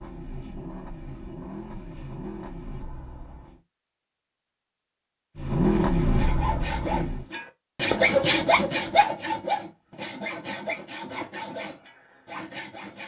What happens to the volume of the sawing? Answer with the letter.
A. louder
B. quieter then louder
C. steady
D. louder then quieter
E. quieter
D.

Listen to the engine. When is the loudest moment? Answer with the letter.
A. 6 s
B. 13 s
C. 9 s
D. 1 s
A.